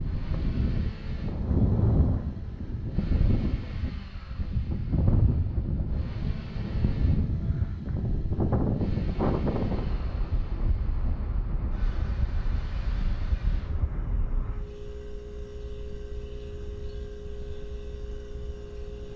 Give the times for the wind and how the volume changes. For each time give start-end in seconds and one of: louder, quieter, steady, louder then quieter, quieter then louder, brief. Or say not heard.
0.0-19.1 quieter.